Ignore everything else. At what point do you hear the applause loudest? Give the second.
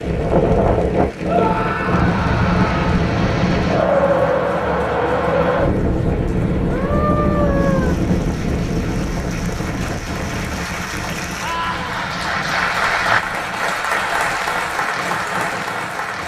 13 s.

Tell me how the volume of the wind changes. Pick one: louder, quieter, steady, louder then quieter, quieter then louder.
quieter.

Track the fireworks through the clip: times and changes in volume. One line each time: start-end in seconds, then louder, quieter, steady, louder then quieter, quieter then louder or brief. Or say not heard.
not heard.